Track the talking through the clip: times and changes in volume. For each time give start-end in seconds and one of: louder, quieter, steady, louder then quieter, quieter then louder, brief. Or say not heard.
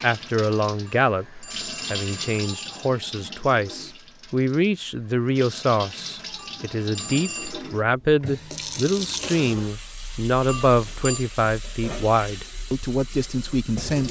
0.0-14.0 steady.